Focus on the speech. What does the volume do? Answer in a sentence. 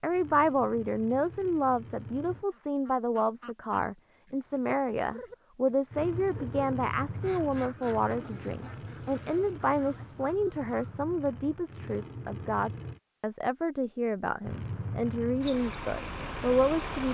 The loudness of the speech stays about the same.